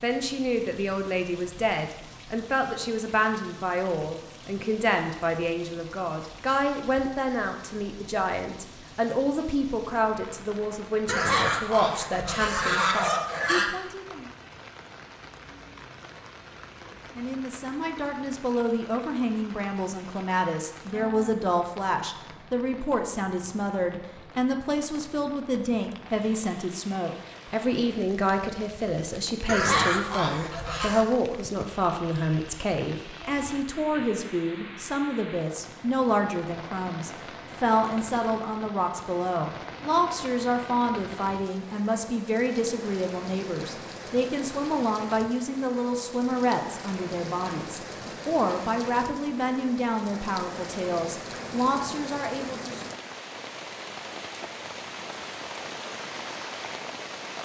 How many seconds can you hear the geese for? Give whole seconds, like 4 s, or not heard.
4 s.